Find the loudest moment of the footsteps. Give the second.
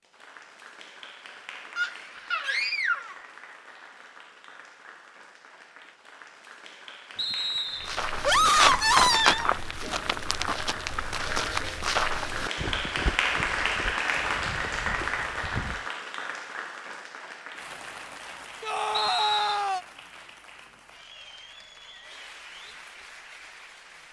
9 s.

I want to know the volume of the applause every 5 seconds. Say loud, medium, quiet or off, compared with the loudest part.
quiet, quiet, loud, medium, quiet.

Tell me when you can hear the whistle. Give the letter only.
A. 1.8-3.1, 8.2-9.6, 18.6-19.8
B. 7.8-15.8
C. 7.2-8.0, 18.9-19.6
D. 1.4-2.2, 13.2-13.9
C.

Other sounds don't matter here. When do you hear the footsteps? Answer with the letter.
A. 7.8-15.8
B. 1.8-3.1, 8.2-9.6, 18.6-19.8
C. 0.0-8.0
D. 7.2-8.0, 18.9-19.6
A.